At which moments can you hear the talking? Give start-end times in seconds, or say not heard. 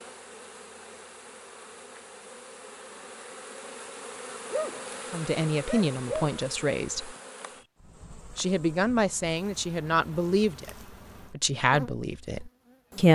5.1-7.2, 8.3-10.7, 11.3-13.1.